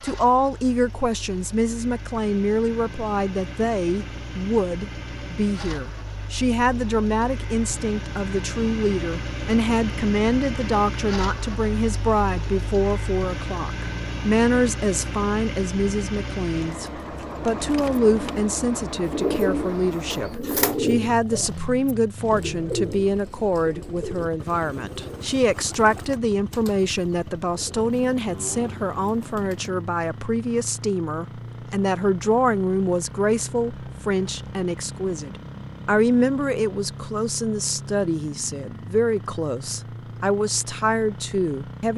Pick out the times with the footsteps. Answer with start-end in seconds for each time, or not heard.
not heard.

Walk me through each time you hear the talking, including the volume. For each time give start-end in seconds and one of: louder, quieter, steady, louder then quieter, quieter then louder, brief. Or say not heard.
0.0-41.9 steady.